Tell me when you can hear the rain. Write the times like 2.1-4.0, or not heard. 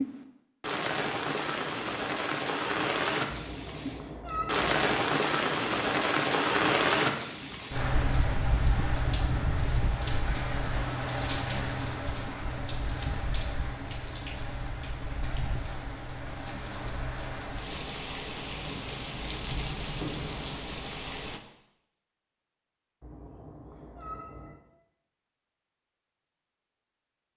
0.0-21.4.